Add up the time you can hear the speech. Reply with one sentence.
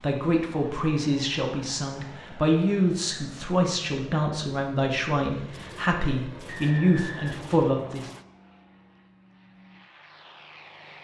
The speech can be heard for 8 seconds in total.